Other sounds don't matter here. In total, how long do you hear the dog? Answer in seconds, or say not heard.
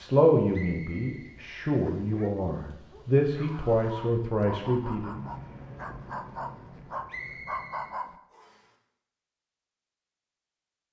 6 s.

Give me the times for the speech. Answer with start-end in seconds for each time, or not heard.
0.0-5.2.